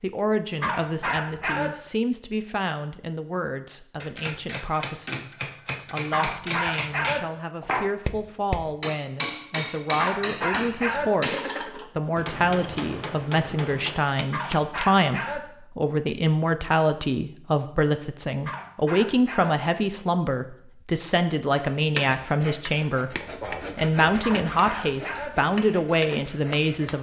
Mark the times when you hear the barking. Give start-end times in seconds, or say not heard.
0.6-1.7, 6.1-7.2, 9.9-11.1, 14.3-15.4, 18.4-19.6, 24.2-25.4.